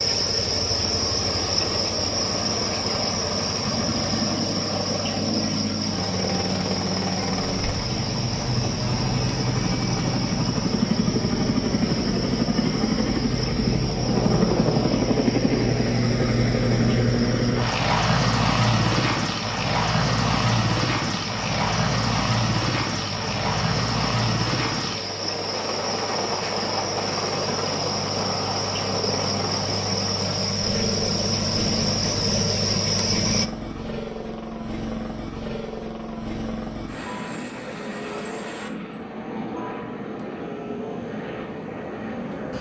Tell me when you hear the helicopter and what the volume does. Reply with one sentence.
The helicopter can be heard from 0.0 to 42.5 s, getting louder then quieter.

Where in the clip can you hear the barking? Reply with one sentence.
The barking can't be heard in this clip.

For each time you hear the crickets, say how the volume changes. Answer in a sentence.
You can hear the crickets from 0.0 to 33.5 s, getting quieter then louder.